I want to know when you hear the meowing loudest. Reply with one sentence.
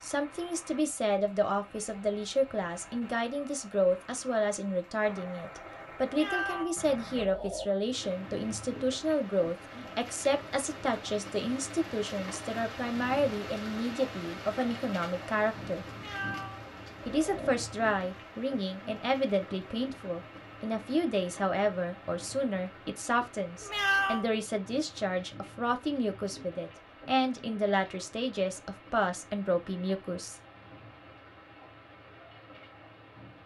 The loudest moment of the meowing is at 24 seconds.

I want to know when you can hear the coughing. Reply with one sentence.
The coughing can't be heard in this clip.